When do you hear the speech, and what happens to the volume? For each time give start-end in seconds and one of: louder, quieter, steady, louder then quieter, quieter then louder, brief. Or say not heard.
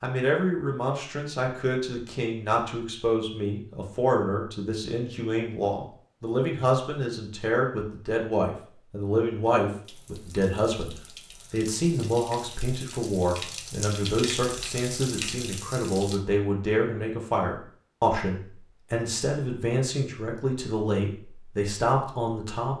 0.0-22.7 steady.